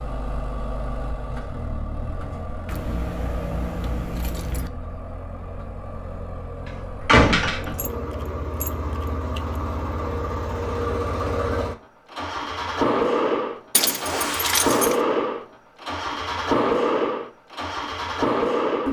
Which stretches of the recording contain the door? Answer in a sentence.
The door can be heard from 7.0 to 7.8 s.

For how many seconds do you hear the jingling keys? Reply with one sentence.
The jingling keys can be heard for 5 seconds in total.